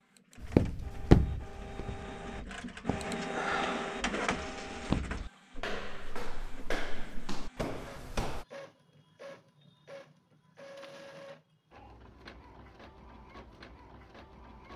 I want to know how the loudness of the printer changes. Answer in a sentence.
The loudness of the printer goes up, then down.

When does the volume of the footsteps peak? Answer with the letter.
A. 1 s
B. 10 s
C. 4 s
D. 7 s
A.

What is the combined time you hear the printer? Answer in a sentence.
You can hear the printer for 15 seconds altogether.